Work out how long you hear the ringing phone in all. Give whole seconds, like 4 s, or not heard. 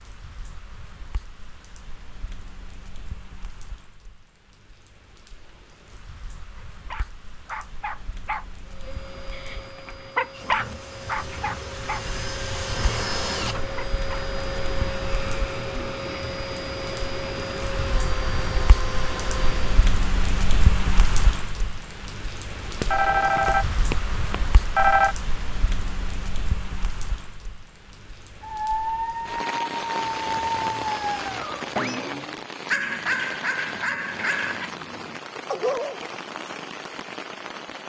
2 s.